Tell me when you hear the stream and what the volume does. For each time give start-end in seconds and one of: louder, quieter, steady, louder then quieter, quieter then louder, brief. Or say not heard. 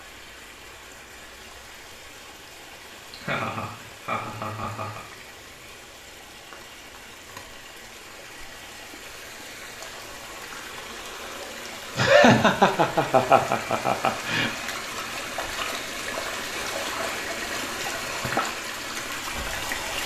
0.0-20.0 louder.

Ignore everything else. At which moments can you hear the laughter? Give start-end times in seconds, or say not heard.
2.9-5.0, 11.9-14.5.